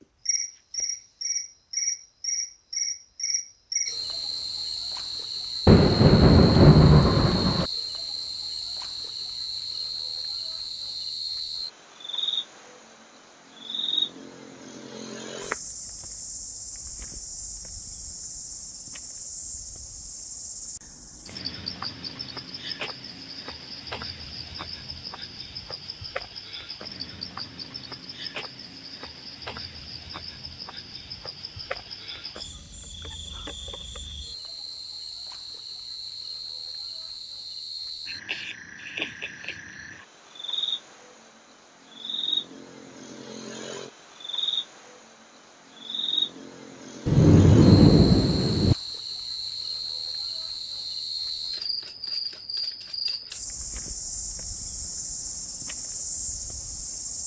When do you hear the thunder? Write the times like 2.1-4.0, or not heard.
5.7-7.7, 47.0-48.8.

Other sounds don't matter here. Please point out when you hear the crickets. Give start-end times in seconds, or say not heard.
0.2-57.2.